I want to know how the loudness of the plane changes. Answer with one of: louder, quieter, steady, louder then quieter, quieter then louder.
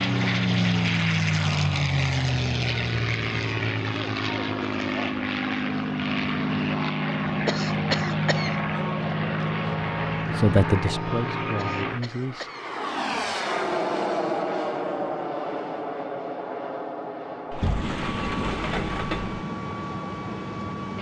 quieter.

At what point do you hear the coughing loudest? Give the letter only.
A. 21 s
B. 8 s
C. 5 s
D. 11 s
B.